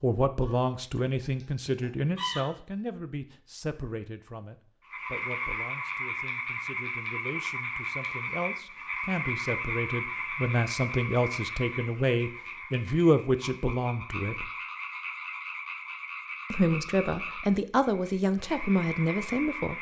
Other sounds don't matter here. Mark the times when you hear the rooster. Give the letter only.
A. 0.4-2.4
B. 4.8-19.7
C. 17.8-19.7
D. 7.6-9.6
A.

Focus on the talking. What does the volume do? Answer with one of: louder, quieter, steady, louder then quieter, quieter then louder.
quieter then louder.